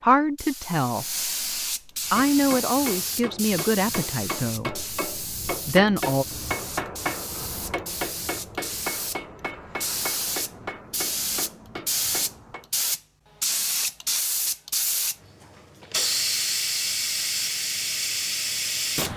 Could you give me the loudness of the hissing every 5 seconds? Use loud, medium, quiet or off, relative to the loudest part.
medium, medium, loud, loud.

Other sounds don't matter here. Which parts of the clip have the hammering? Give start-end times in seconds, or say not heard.
2.0-12.7.